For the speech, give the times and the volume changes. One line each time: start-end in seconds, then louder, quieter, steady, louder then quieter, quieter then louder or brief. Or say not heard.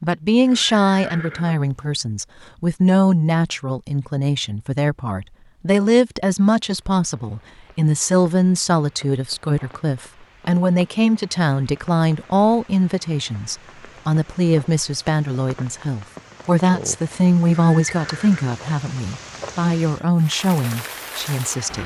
0.0-21.8 steady.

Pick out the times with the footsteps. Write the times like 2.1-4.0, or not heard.
not heard.